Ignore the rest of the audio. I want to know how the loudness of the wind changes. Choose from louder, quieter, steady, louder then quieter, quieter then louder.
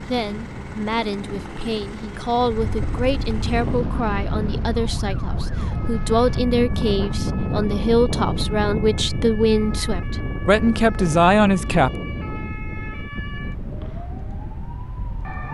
louder then quieter.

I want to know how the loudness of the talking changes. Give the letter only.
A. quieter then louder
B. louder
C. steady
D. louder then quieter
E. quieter
B.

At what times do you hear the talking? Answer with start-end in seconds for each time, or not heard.
0.1-11.9.